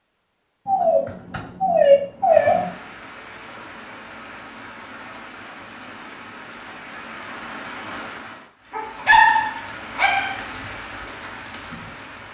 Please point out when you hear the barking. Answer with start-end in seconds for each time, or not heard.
0.7-2.6, 8.7-10.4.